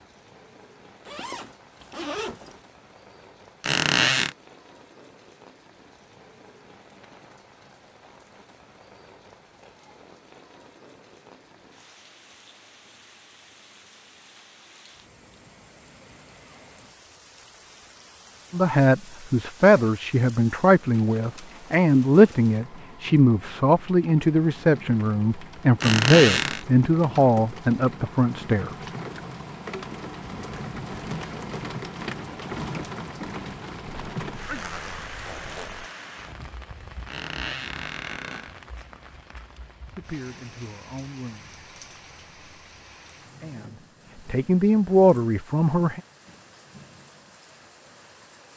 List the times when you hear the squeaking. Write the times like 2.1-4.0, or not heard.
3.6-4.3, 25.8-26.6, 37.0-38.5.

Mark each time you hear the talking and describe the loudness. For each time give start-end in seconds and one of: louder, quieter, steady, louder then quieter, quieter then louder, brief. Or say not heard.
18.5-28.9 steady
39.9-41.5 brief
43.2-46.0 brief.